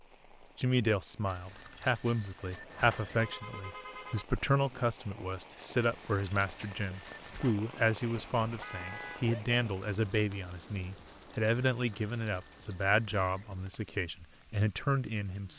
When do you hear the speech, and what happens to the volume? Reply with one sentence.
The speech can be heard from 0.4 to 15.5 s, at a steady volume.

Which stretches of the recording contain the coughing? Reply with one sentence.
You can't hear the coughing here.